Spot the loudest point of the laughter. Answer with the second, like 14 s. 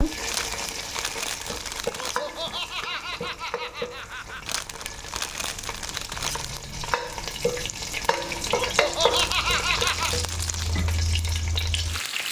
9 s.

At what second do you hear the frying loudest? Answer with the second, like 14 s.
9 s.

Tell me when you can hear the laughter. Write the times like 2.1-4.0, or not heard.
1.9-4.6, 8.4-10.2.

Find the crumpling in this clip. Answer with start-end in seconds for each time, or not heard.
0.2-2.2, 4.5-6.5, 9.1-10.7.